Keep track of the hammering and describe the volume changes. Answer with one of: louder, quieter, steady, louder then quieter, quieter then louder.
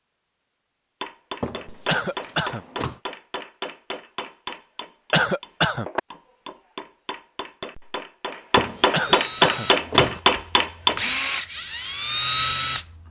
louder.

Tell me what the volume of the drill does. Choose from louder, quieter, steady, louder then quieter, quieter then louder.
quieter then louder.